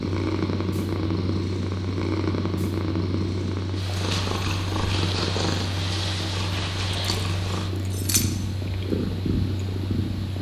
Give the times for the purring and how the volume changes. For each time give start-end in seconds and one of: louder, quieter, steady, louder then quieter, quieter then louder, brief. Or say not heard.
0.0-10.3 steady.